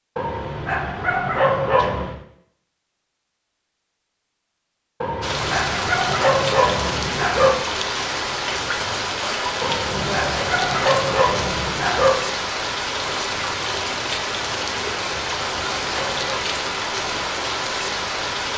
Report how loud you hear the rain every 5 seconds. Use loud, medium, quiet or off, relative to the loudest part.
off, loud, loud, loud.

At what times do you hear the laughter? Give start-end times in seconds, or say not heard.
9.9-10.5.